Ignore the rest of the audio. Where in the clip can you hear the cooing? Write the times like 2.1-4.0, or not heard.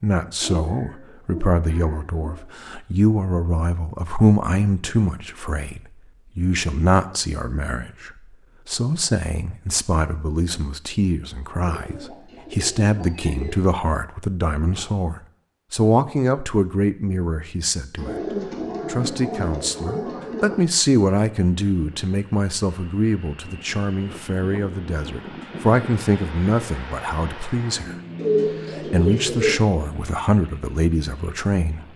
0.4-2.4, 11.6-13.7, 17.9-20.8, 28.1-29.6.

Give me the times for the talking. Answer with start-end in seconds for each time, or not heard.
0.0-18.2, 18.9-27.9, 28.9-31.8.